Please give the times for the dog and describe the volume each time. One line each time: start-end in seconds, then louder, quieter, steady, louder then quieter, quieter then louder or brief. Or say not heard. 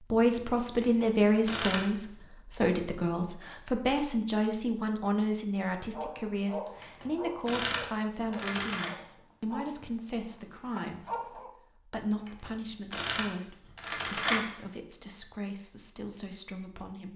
5.8-11.5 quieter.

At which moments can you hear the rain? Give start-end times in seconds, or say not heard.
not heard.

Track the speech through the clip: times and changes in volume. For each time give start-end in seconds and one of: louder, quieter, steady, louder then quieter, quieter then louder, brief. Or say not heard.
0.0-17.1 quieter.